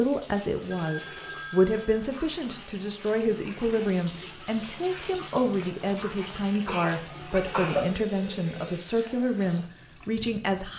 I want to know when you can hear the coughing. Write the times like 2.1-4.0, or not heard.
6.2-7.9.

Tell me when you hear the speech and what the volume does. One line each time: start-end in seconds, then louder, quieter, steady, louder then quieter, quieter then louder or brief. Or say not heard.
0.0-10.7 steady.